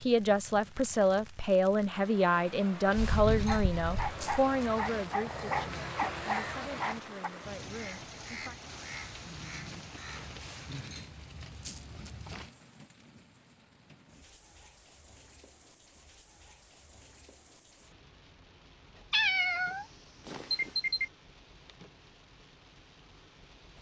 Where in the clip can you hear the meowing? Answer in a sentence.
The meowing can be heard from 3.0 to 4.2 s and from 19.1 to 21.1 s.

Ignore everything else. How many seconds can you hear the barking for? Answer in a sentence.
You can hear the barking for 4 seconds altogether.